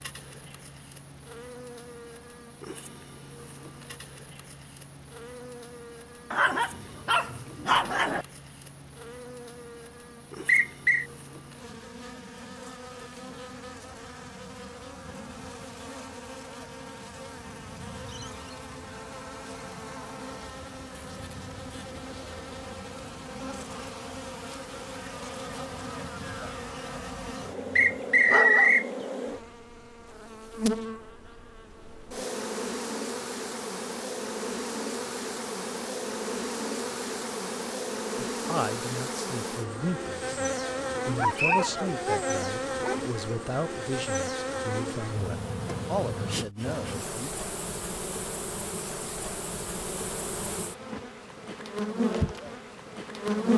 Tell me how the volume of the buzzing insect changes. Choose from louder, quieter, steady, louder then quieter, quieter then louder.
louder.